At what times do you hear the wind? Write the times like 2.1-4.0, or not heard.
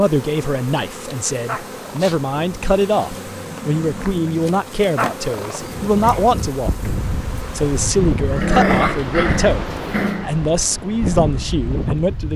5.6-12.3.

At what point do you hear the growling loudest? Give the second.
9 s.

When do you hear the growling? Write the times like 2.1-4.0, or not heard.
1.4-2.1, 5.0-6.2, 8.2-10.3.